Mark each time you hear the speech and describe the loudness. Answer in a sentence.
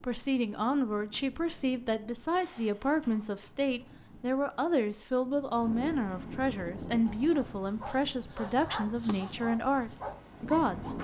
The speech can be heard from 0.0 to 10.9 s, at a steady volume.